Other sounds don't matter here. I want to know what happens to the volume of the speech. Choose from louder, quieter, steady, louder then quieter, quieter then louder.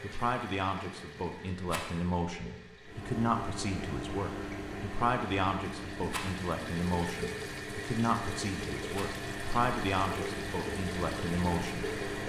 steady.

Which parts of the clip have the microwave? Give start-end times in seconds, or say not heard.
2.8-12.2.